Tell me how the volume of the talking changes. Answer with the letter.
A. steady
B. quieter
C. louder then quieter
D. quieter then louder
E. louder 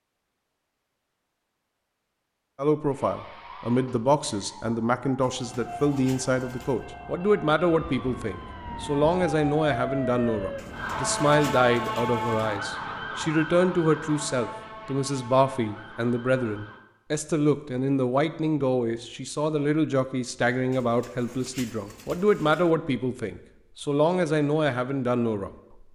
A.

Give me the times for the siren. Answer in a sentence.
You can hear the siren from 2.9 to 16.8 s.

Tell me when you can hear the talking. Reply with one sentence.
The talking can be heard from 2.5 to 25.5 s.